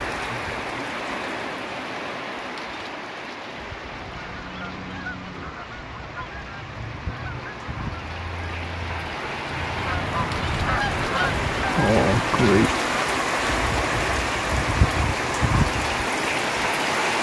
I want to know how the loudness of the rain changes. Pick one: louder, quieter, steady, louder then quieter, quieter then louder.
quieter then louder.